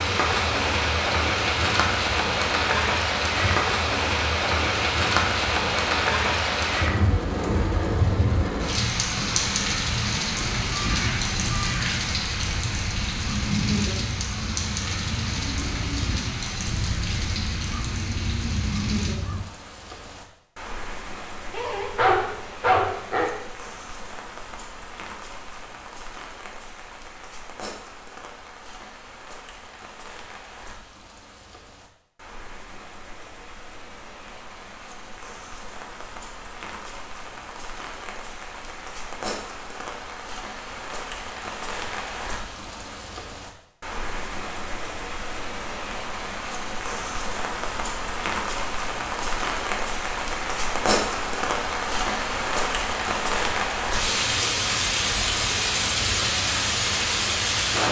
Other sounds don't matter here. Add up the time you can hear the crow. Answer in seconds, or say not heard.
9 s.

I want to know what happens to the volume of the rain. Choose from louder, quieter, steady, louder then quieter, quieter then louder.
quieter then louder.